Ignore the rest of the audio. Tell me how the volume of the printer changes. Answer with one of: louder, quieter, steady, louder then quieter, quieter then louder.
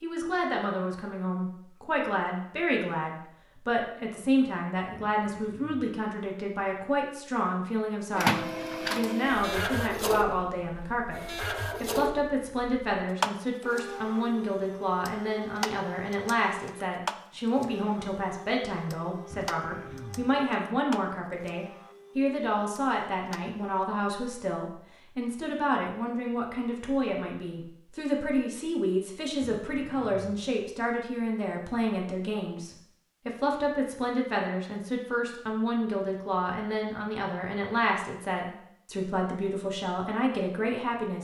quieter.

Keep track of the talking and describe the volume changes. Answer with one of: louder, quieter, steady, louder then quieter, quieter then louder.
steady.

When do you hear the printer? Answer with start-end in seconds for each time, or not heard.
8.2-23.9.